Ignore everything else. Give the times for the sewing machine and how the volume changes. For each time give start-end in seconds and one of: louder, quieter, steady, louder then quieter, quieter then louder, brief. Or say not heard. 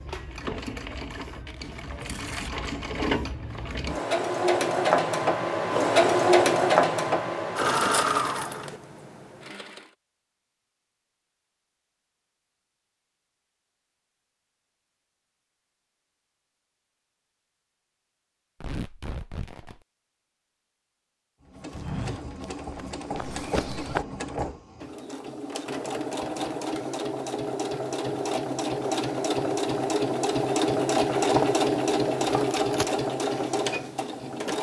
0.0-9.9 louder then quieter
21.4-34.5 louder.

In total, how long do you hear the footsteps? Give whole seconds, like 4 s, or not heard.
2 s.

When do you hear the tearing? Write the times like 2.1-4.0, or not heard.
1.5-2.5, 18.6-19.9, 32.4-33.0.